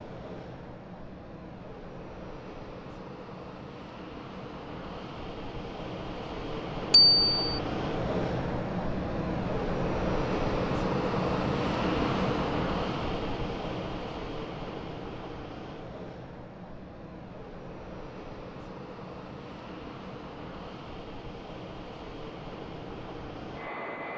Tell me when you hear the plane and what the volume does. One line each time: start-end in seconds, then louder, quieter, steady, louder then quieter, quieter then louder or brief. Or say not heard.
0.0-24.1 louder then quieter.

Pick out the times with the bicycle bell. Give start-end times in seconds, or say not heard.
6.9-7.6.